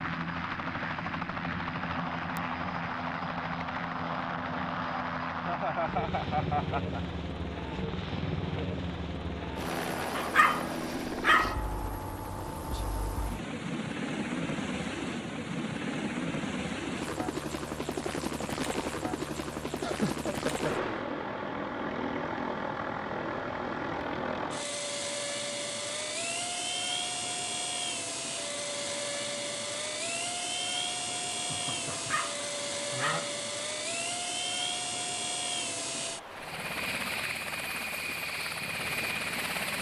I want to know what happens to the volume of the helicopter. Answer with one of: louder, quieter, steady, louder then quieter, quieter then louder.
steady.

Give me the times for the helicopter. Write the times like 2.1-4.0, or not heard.
0.0-39.7.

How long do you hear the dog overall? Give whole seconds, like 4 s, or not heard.
3 s.